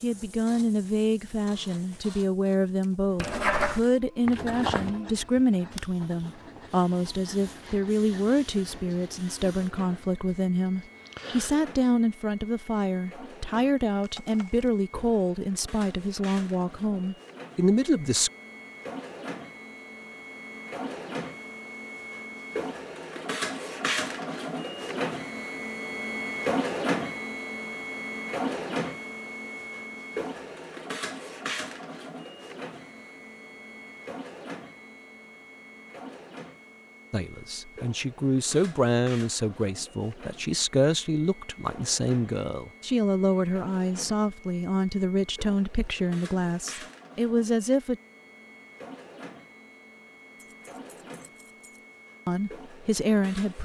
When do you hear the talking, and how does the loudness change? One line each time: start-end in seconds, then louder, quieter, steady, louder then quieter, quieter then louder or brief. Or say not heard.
0.0-18.3 steady
37.1-48.0 steady
52.2-53.6 brief.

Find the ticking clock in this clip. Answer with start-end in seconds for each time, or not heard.
not heard.